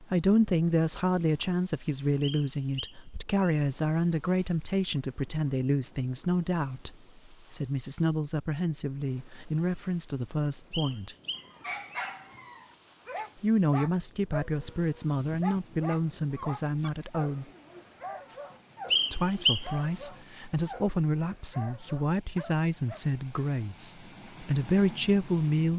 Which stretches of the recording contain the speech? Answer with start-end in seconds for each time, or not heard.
0.0-11.2, 13.4-17.4, 19.1-25.7.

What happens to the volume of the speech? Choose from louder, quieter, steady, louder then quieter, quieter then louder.
steady.